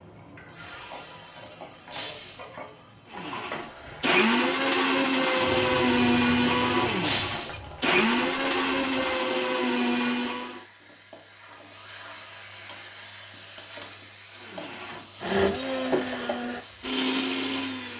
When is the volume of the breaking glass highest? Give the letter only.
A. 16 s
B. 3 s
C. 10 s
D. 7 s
D.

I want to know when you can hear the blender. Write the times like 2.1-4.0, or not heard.
3.1-10.7, 14.3-17.9.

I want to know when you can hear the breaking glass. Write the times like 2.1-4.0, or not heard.
1.9-2.5, 7.0-7.6, 15.4-16.4.